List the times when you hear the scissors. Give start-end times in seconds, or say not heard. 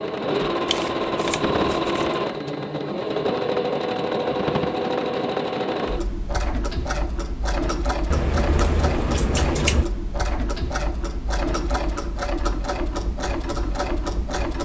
0.7-2.1, 8.1-9.8.